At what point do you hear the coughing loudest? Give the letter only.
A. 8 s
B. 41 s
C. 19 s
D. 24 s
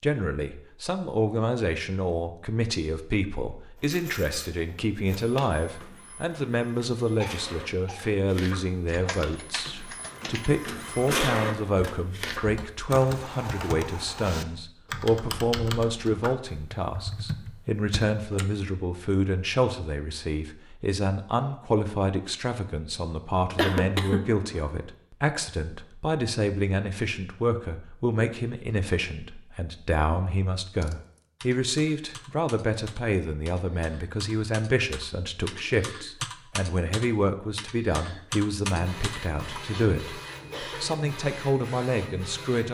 D.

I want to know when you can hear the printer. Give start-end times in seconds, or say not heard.
3.8-13.8, 38.6-42.7.